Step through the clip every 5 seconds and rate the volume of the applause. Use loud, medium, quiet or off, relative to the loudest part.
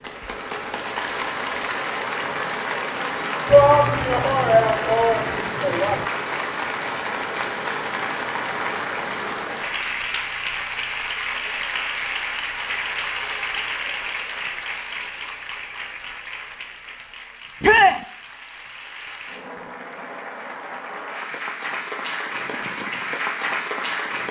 loud, loud, loud, medium, loud.